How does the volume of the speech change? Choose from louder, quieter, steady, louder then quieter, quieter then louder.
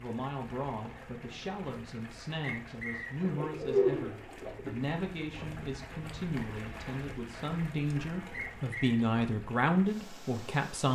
louder.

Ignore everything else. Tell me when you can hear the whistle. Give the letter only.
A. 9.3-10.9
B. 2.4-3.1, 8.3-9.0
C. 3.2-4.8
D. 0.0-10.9
B.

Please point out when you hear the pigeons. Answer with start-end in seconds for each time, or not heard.
3.2-4.8.